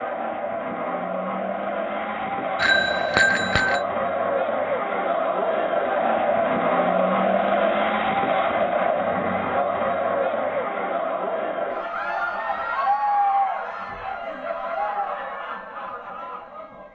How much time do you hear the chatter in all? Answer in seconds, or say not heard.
17 s.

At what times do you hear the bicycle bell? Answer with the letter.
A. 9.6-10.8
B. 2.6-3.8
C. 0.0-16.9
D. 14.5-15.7
B.